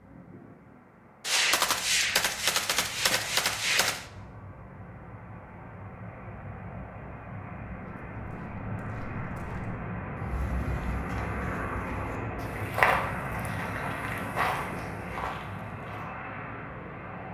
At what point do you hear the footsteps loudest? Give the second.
13 s.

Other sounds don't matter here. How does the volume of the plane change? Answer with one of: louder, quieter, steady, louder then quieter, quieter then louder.
louder.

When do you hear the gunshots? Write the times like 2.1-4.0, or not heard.
1.2-4.0.